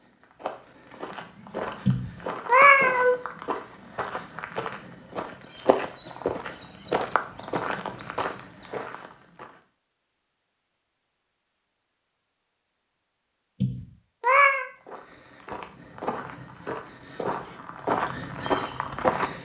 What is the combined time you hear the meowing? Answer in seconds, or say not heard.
2 s.